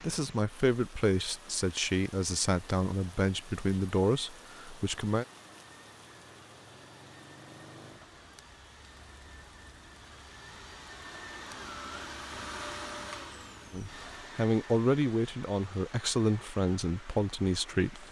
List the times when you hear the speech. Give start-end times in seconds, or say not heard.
0.0-5.2, 13.7-18.0.